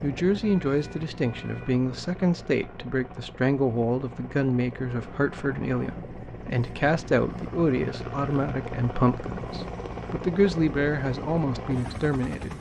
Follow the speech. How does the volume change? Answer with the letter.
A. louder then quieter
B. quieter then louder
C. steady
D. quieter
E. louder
C.